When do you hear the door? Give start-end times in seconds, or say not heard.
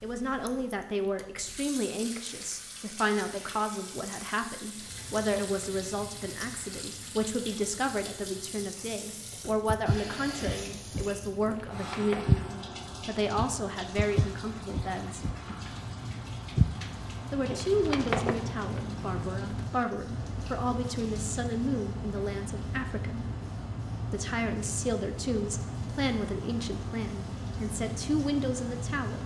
11.4-12.2, 17.4-18.8.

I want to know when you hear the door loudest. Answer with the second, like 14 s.
18 s.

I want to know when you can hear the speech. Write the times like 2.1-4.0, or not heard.
0.0-15.2, 17.3-23.2, 24.1-29.2.